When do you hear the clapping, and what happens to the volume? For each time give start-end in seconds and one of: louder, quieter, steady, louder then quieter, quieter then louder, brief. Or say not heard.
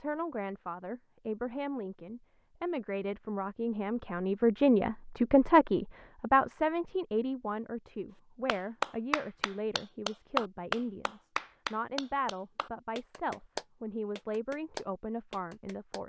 8.4-16.0 louder then quieter.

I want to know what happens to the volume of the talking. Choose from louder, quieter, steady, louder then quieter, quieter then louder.
louder then quieter.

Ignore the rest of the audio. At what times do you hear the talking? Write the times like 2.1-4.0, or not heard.
0.0-16.0.